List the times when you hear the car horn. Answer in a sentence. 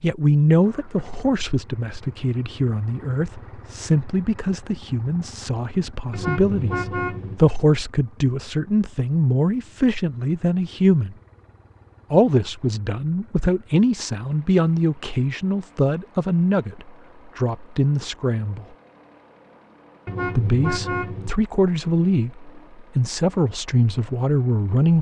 You can hear the car horn from 6.1 to 7.4 s and from 20.1 to 21.3 s.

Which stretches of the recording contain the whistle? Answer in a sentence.
The whistle can't be heard in this clip.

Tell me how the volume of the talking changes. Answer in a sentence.
The volume of the talking stays about the same.